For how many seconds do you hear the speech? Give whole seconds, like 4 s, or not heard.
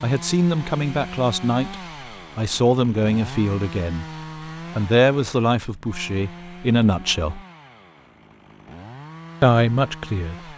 7 s.